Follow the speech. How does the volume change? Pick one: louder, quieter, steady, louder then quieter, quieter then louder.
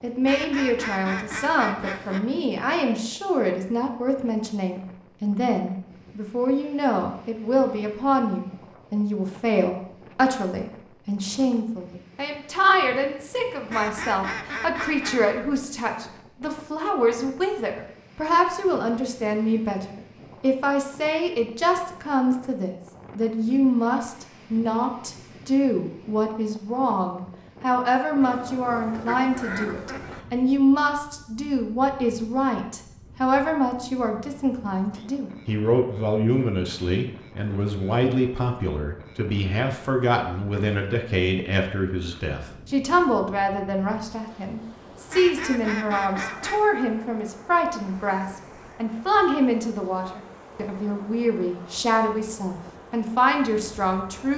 steady.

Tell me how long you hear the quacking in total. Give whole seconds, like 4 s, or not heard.
7 s.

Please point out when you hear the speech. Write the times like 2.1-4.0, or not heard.
0.0-54.3.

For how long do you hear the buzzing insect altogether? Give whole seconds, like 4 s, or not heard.
not heard.